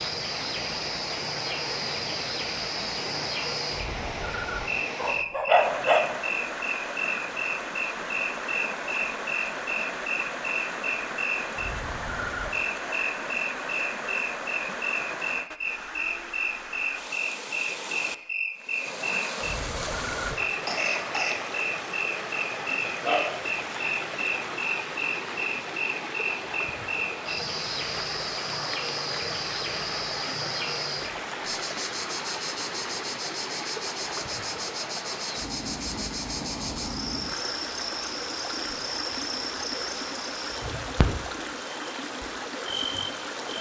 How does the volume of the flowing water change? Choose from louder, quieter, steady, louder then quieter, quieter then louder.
steady.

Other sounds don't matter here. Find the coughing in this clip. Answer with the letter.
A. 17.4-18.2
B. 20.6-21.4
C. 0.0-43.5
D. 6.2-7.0
B.